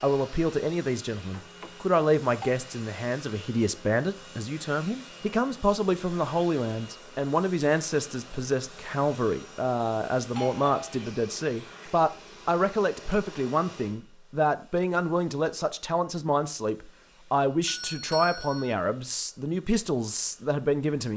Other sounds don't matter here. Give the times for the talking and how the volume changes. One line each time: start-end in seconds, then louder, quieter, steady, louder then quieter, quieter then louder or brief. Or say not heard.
0.0-21.1 steady.